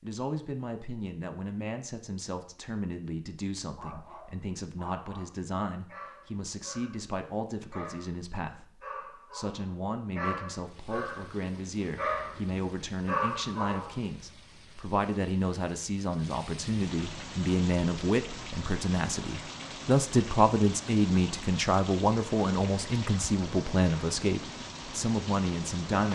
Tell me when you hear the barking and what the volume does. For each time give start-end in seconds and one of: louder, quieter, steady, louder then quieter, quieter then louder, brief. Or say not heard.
3.8-14.0 louder.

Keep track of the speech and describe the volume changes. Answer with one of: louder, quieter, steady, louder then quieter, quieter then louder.
louder.